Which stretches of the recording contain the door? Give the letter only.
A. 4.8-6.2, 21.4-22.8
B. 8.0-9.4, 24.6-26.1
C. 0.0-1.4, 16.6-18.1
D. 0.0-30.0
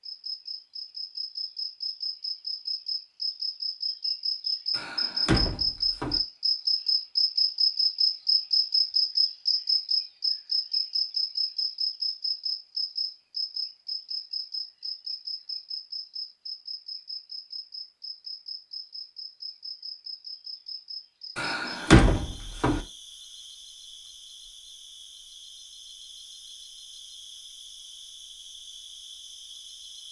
A.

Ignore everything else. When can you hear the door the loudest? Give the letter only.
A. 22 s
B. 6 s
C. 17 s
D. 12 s
A.